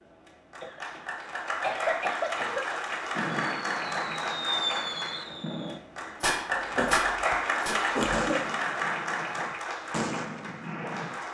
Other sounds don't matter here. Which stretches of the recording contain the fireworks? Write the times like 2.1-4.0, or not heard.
3.1-11.2.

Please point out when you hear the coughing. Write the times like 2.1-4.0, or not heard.
0.6-2.6, 6.5-8.4.